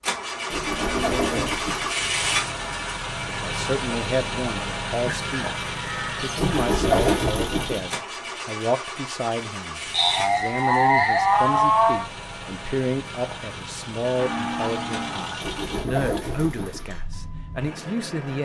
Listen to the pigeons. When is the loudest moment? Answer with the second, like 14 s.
7 s.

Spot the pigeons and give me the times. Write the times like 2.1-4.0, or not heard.
0.5-1.9, 6.3-7.8, 15.4-16.9.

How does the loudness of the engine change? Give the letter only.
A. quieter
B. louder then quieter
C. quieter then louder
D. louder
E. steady
A.